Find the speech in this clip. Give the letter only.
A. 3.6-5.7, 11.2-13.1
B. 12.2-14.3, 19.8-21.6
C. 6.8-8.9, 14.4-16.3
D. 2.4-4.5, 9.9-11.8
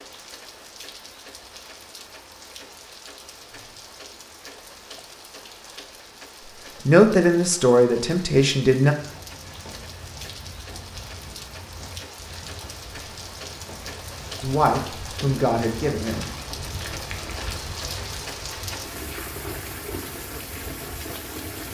C.